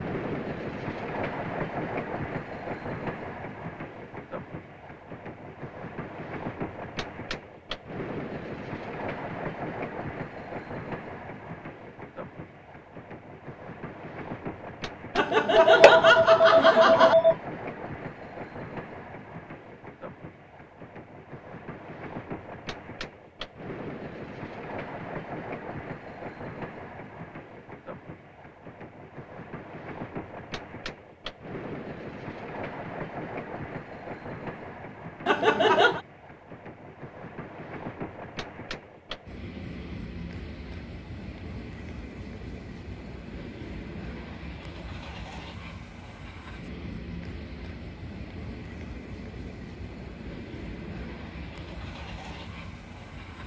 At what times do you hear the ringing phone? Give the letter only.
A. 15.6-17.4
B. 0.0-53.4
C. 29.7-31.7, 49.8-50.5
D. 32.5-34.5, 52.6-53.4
A.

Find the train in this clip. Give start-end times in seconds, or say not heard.
0.0-53.4.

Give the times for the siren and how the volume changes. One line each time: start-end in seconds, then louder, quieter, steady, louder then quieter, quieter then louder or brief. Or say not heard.
not heard.